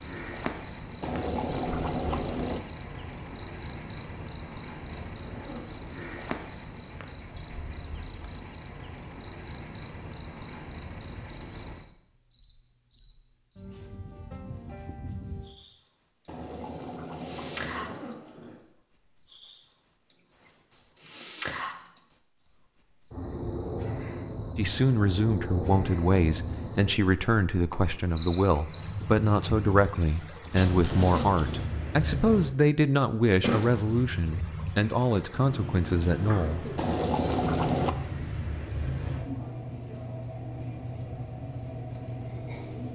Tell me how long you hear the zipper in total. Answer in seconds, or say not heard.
3 s.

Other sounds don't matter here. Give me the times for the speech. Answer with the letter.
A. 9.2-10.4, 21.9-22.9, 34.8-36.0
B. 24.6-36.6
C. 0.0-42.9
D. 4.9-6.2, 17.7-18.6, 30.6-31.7
B.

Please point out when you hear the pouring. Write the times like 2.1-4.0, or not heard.
1.0-2.6, 16.2-18.0, 36.8-38.0.